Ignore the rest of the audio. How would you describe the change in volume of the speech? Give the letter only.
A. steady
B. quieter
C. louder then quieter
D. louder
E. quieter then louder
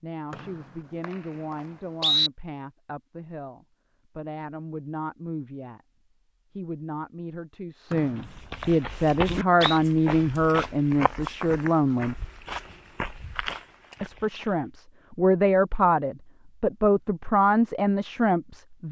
D.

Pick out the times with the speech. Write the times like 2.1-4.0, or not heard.
0.0-5.8, 6.5-12.2, 14.0-18.8.